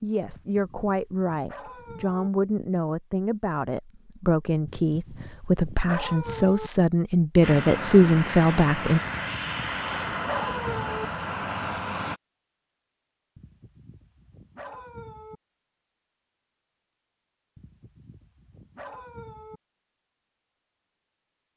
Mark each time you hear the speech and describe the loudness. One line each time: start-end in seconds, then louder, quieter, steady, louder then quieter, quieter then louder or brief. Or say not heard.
0.0-9.0 louder.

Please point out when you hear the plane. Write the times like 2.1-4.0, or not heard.
7.4-12.2.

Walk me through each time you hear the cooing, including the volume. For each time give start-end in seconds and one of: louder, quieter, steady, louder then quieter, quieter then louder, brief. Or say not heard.
not heard.